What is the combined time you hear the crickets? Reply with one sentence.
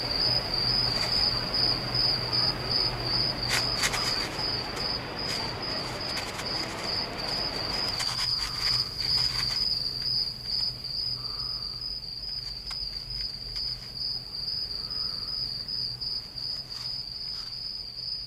You can hear the crickets for 18 seconds altogether.